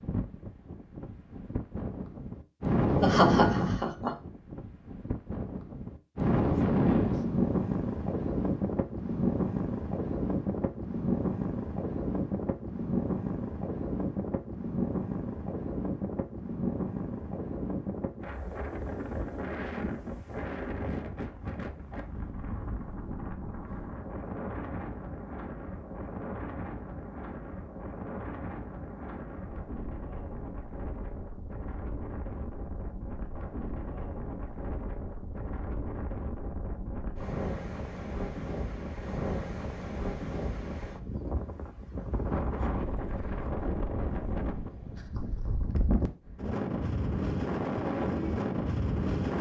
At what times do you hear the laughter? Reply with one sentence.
The laughter can be heard from 2.9 to 4.2 s.